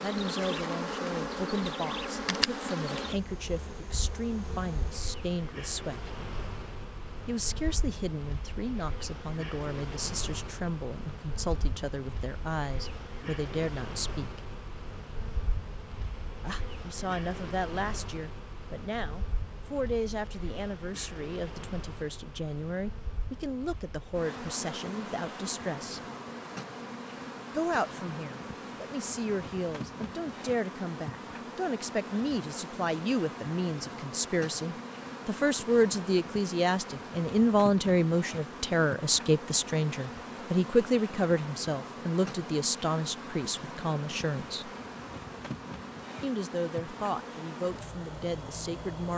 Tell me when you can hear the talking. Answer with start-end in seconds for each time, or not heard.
0.0-6.2, 7.2-14.4, 16.4-26.0, 27.5-44.7, 46.2-49.1.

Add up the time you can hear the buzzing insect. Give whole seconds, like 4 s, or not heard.
49 s.